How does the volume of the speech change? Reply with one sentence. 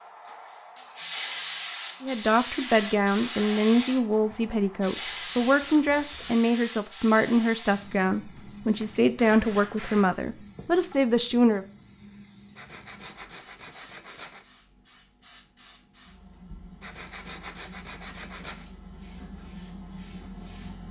The loudness of the speech stays about the same.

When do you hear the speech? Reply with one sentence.
The speech can be heard from 2.0 to 11.7 s.